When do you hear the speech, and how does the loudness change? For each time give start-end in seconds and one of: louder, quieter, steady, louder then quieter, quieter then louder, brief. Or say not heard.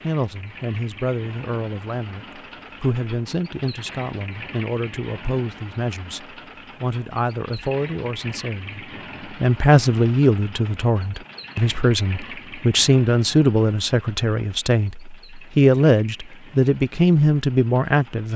0.0-18.3 louder.